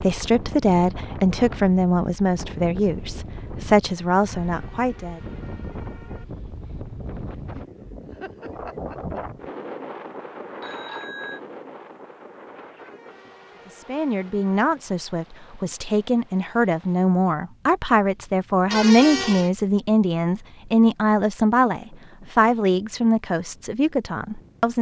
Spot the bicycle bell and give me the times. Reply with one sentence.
You can hear the bicycle bell from 10.6 to 11.4 s.